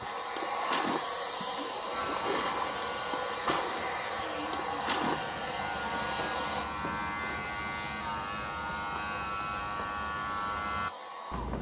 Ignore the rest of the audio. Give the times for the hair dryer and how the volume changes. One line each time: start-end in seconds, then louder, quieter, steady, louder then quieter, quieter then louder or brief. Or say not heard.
0.0-11.5 quieter.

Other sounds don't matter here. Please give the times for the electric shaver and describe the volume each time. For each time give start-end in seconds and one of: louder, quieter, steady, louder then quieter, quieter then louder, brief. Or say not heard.
1.9-11.5 louder.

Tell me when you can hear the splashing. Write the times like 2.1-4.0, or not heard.
0.0-5.3.